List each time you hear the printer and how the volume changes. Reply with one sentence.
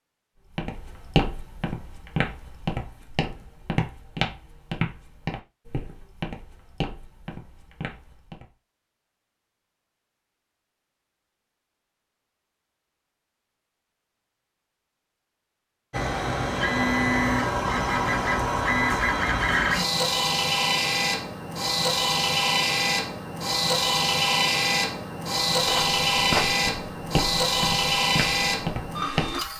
The printer can be heard from 15.9 to 29.5 s, at a steady volume.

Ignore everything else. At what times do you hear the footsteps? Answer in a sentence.
The footsteps can be heard from 0.6 to 8.4 s and from 25.6 to 29.5 s.